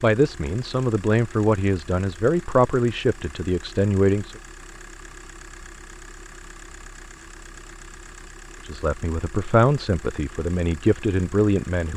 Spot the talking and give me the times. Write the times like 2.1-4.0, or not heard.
0.0-4.3, 8.7-11.9.